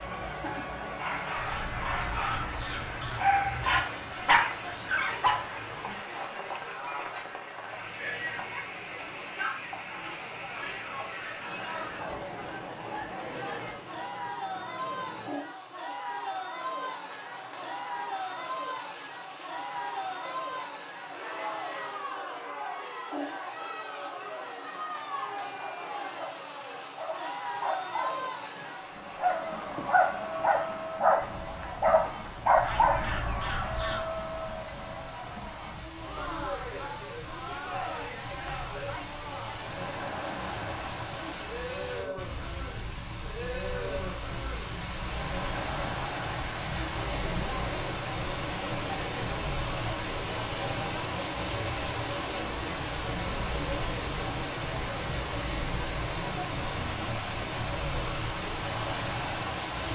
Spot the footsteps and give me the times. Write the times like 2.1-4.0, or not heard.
not heard.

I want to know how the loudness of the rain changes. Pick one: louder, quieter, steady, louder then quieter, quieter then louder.
louder.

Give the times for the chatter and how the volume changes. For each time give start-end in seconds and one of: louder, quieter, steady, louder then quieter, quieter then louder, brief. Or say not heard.
0.0-59.8 steady.